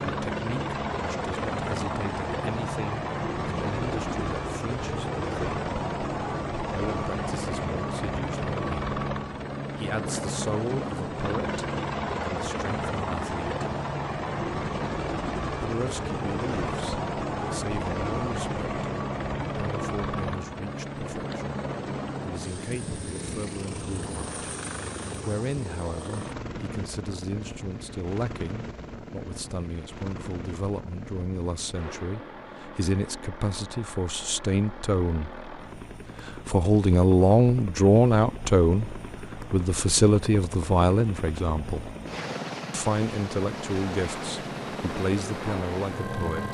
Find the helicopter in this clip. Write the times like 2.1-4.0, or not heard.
0.0-46.4.